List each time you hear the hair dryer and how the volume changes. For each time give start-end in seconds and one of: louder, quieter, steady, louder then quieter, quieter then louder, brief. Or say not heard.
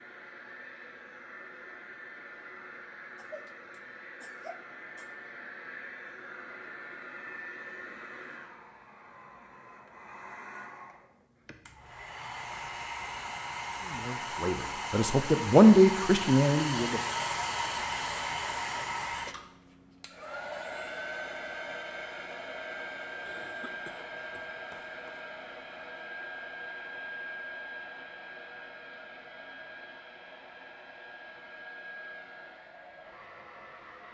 0.0-34.0 louder then quieter.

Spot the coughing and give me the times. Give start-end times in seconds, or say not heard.
3.1-5.2, 23.2-25.2.